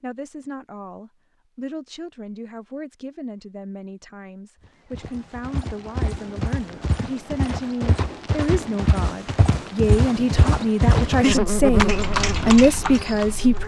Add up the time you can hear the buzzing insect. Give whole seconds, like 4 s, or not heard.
2 s.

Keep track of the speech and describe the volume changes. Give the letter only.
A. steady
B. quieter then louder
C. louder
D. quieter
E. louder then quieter
C.